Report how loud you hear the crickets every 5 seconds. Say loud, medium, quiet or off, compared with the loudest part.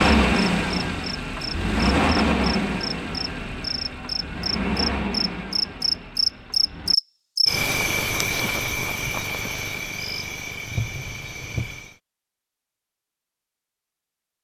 medium, loud, medium.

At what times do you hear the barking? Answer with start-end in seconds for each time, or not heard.
not heard.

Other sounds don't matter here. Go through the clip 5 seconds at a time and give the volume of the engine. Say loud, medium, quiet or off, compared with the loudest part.
loud, medium, off.